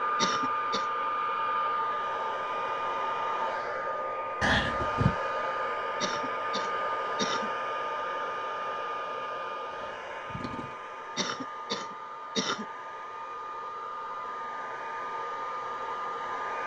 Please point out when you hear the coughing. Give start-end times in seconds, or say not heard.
0.1-0.8, 6.0-7.5, 11.2-12.7.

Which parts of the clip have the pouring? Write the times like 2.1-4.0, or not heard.
4.4-5.1, 9.7-10.8.